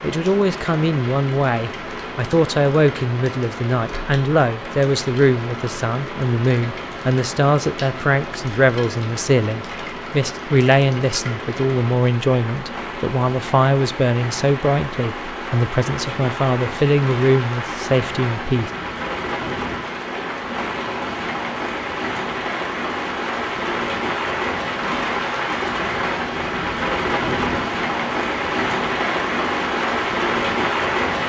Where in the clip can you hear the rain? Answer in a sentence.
You can hear the rain from 0.0 to 31.2 s.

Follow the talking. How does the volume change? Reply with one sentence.
The volume of the talking stays about the same.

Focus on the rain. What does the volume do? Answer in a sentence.
The loudness of the rain goes up.